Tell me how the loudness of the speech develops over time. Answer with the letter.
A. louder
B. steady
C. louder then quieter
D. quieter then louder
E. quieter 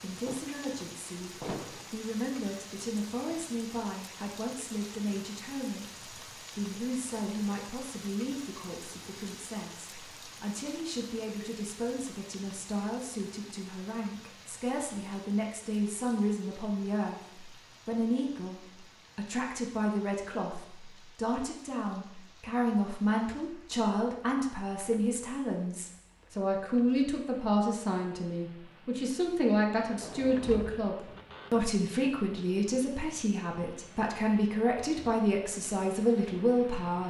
A.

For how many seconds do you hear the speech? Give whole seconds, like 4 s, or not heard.
37 s.